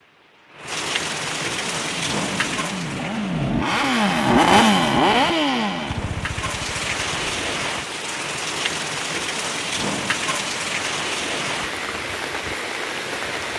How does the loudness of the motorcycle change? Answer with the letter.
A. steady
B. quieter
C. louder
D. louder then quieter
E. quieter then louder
D.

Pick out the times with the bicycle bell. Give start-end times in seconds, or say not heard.
not heard.